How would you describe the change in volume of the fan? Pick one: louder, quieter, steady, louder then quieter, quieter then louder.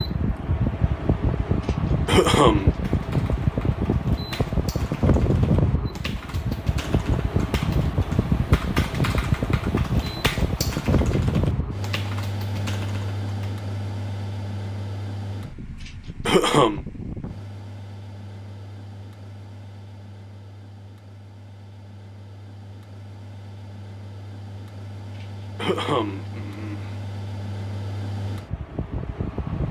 quieter then louder.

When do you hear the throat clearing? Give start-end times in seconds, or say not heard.
1.6-2.7, 15.8-16.8, 25.1-26.9.